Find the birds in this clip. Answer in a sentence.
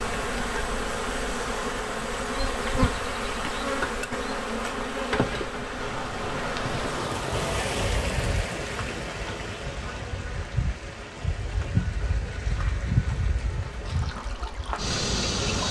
The birds can't be heard in this clip.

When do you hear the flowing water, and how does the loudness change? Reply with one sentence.
You can hear the flowing water from 5.7 to 15.6 s, getting quieter.